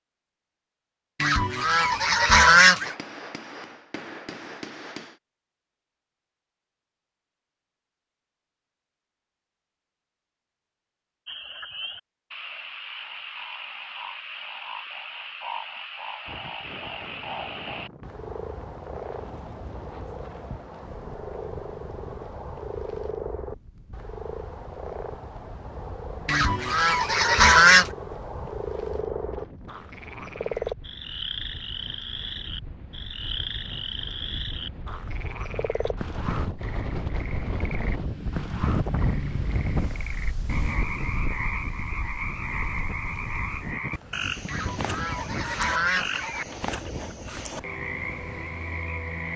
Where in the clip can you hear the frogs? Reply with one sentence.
The frogs can be heard from 11.2 to 49.3 s.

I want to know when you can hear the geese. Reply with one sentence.
You can hear the geese from 1.2 to 3.0 s, from 26.2 to 27.9 s and from 44.5 to 46.5 s.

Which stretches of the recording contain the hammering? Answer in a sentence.
You can hear the hammering from 2.8 to 5.2 s.